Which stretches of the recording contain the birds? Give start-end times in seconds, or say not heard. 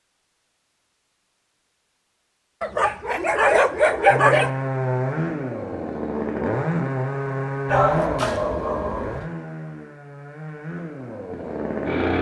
not heard.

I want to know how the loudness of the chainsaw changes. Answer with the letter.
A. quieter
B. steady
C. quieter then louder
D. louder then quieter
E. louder
A.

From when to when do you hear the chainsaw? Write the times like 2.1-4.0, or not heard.
4.0-12.1.